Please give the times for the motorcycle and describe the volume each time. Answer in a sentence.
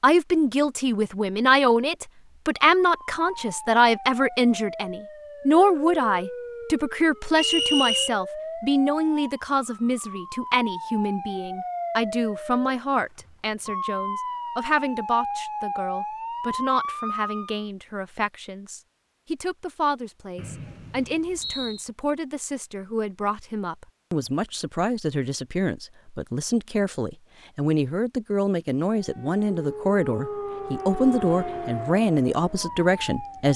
The motorcycle can't be heard in this clip.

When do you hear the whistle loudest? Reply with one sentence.
The volume of the whistle peaks at 8 seconds.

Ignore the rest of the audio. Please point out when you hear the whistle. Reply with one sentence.
The whistle can be heard from 7.3 to 8.1 s and from 20.4 to 21.9 s.